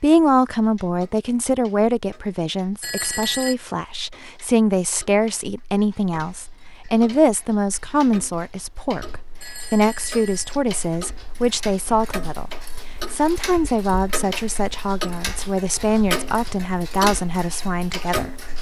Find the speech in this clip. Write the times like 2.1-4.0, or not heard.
0.0-18.4.